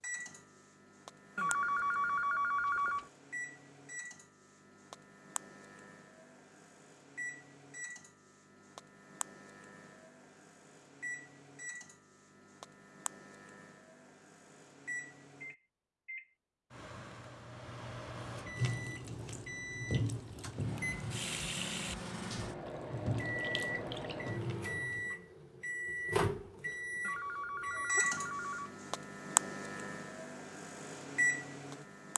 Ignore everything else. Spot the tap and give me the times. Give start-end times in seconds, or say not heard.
18.6-25.1.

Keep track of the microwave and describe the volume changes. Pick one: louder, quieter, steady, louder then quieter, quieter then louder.
louder.